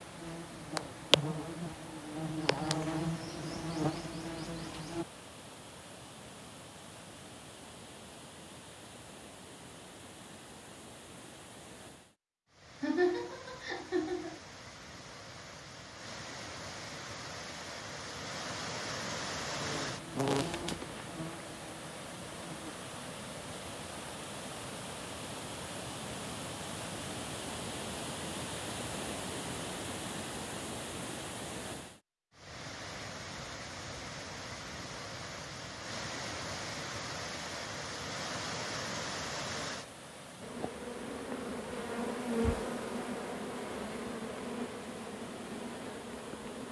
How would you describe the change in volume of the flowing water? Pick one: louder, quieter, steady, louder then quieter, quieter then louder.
louder.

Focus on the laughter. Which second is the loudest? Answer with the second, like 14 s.
13 s.